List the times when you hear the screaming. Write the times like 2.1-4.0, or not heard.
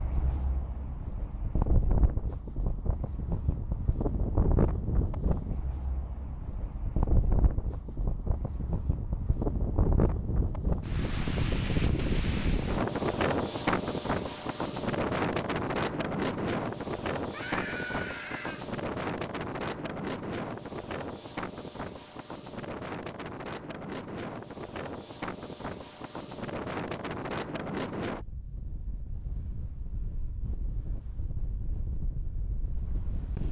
17.3-18.7.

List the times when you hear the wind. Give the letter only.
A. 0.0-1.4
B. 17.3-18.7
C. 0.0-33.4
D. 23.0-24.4
C.